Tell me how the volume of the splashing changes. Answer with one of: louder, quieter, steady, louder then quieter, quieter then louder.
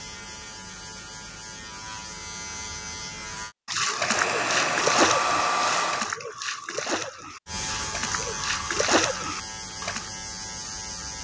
quieter then louder.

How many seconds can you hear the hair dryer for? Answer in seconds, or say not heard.
2 s.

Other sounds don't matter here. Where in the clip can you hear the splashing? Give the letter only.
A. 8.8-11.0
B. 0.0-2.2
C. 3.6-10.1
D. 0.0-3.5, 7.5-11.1
C.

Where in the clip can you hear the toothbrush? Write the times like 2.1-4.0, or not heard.
not heard.